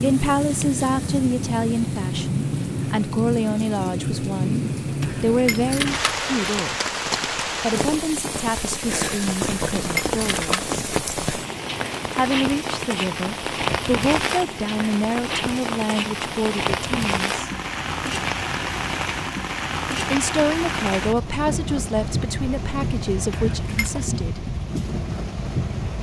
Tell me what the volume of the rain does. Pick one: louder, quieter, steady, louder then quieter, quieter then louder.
steady.